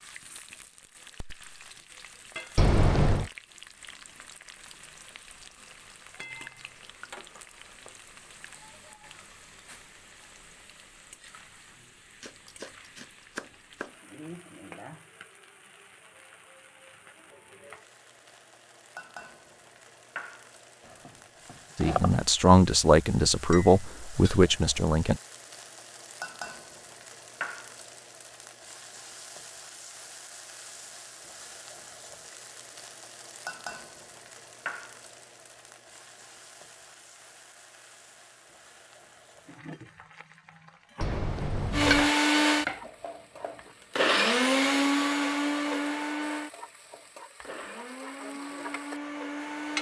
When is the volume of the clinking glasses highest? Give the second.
3 s.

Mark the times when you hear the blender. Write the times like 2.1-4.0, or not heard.
41.7-49.7.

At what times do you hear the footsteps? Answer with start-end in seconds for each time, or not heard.
not heard.